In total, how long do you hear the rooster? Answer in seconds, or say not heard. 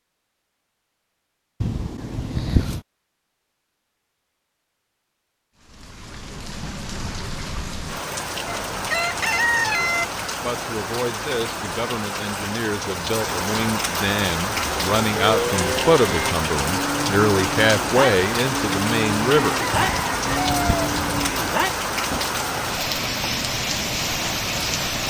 3 s.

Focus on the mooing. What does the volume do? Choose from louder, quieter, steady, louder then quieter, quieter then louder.
steady.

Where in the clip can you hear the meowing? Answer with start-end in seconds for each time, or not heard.
1.6-2.8, 19.7-21.4.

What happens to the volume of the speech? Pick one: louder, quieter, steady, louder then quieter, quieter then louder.
louder.